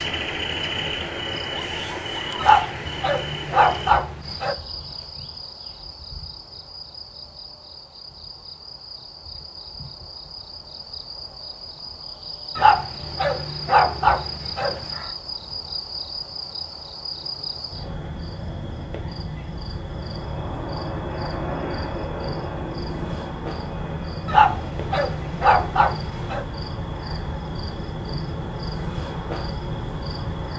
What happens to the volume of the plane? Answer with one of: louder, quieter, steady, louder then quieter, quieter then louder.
quieter.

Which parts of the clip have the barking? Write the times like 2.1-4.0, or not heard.
2.4-4.5, 12.6-15.1, 24.2-26.4.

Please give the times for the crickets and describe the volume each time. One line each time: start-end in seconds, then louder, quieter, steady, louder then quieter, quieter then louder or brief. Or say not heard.
0.0-30.5 quieter then louder.